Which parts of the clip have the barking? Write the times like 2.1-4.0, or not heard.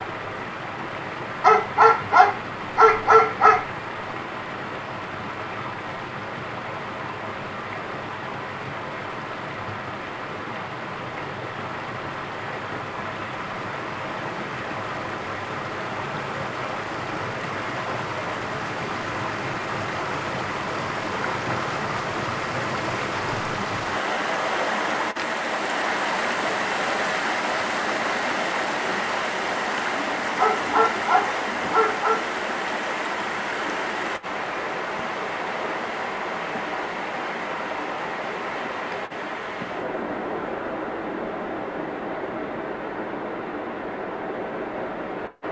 1.4-3.6, 30.4-32.2.